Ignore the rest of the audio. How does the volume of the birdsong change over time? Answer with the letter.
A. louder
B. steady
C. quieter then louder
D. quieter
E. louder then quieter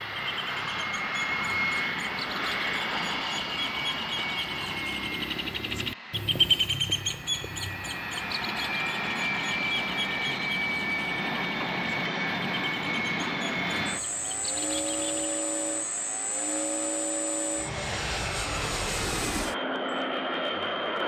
E.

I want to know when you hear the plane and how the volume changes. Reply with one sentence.
You can hear the plane from 0.0 to 21.0 s, getting quieter then louder.